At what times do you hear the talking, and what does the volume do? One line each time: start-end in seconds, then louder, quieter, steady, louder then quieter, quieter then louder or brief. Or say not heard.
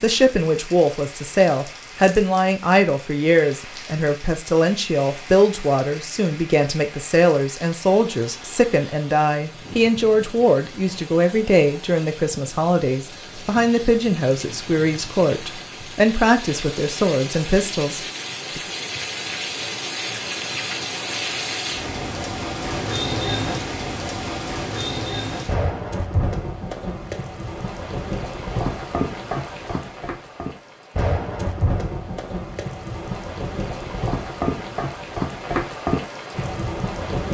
0.0-18.6 steady.